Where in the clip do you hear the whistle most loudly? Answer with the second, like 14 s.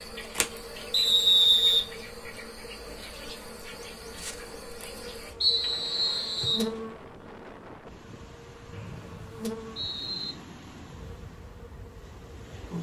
1 s.